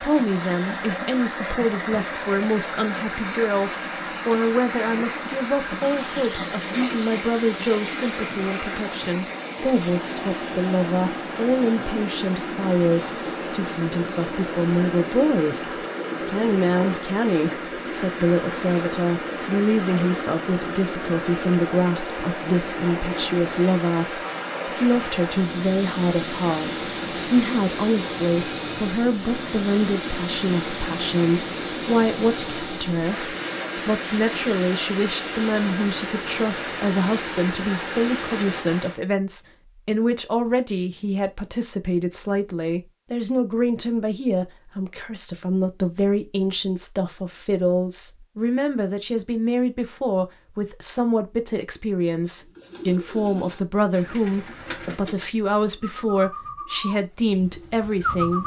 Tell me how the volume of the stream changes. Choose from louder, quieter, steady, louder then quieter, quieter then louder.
steady.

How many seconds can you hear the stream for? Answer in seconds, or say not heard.
39 s.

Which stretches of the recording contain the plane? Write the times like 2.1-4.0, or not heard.
not heard.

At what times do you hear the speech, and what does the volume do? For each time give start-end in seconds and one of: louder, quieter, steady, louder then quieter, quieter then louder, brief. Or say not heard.
0.0-58.4 steady.